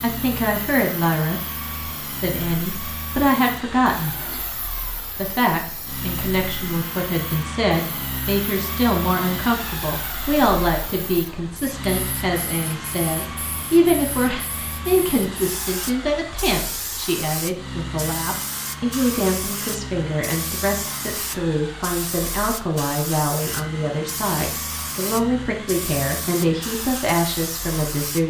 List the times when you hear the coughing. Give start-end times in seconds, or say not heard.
3.9-4.5.